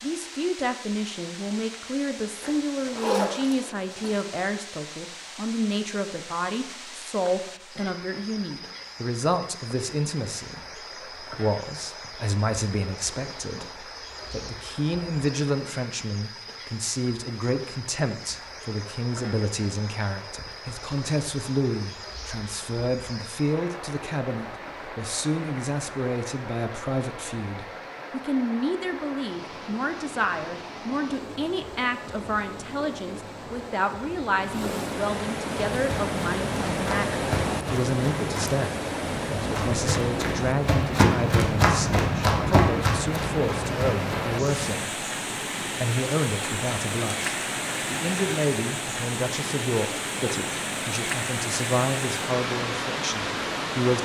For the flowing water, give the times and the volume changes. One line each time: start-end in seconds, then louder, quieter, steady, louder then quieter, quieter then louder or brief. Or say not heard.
0.0-54.0 louder.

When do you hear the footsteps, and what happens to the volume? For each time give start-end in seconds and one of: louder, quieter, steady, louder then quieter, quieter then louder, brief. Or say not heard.
35.5-44.8 louder then quieter.